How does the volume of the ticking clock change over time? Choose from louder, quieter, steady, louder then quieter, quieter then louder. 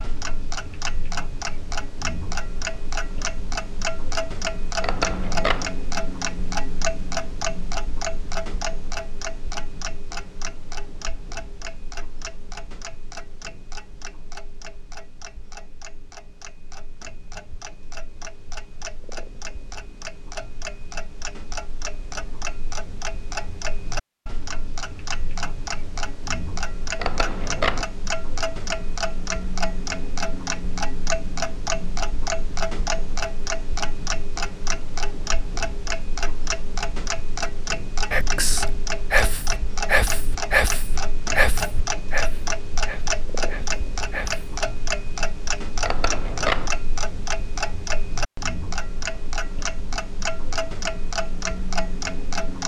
quieter then louder.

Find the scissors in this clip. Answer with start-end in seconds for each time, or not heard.
4.8-5.7, 26.9-27.9, 45.8-46.7.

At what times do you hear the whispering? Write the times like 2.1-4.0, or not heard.
38.0-44.6.